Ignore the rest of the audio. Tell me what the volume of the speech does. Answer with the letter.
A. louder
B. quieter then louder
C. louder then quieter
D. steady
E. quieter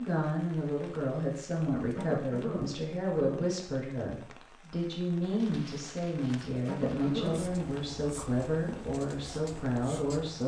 D.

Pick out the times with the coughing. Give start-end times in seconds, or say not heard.
1.9-3.5, 6.7-7.4.